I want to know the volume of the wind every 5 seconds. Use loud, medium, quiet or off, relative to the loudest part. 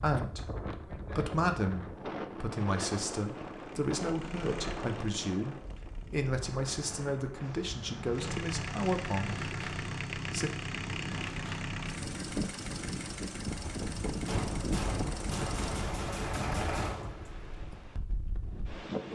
loud, medium, loud, loud.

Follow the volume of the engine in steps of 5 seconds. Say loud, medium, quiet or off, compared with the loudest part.
medium, loud, loud, loud.